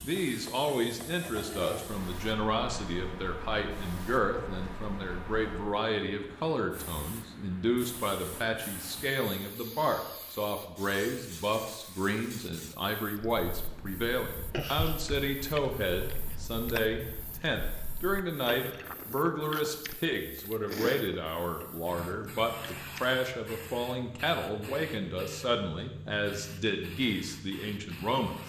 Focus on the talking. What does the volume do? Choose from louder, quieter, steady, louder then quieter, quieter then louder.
steady.